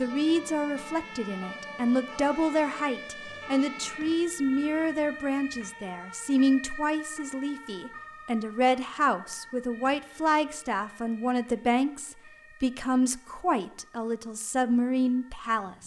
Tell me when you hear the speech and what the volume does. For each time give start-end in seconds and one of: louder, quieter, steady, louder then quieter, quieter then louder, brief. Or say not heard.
0.0-15.8 steady.